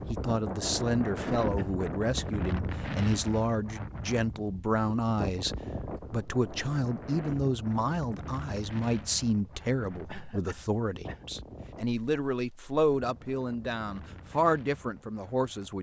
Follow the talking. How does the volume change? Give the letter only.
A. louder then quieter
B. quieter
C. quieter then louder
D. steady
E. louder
D.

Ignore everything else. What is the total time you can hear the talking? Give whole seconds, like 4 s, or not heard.
16 s.